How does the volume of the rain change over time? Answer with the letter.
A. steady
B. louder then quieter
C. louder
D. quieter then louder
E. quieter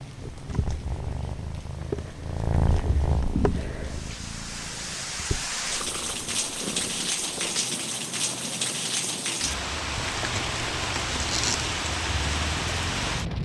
C.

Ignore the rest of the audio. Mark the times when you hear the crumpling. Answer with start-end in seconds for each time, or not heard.
9.9-11.8.